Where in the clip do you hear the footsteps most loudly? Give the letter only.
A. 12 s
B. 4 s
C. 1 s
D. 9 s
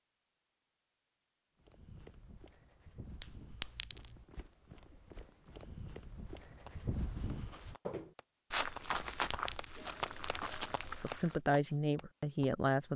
D.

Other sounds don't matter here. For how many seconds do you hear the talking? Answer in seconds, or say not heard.
2 s.